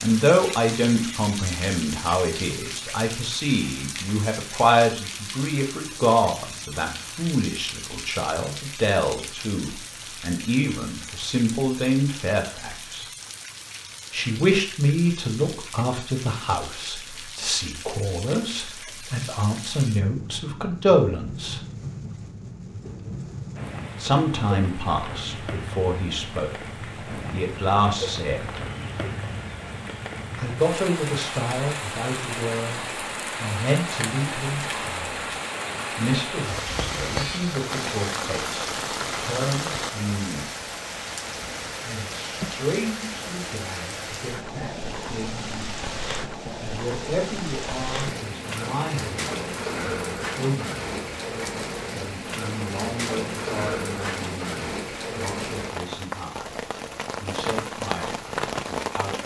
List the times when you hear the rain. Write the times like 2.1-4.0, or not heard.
0.0-59.2.